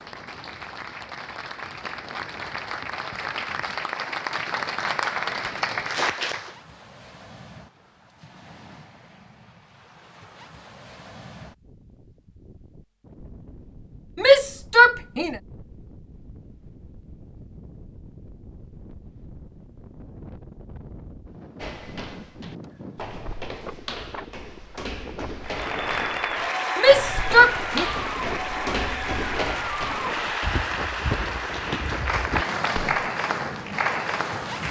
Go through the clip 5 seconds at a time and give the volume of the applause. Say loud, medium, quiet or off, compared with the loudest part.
medium, loud, off, off, off, loud, loud.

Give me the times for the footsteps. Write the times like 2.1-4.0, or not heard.
21.6-33.1.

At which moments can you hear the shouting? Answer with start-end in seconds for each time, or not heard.
14.2-15.3, 26.8-27.9.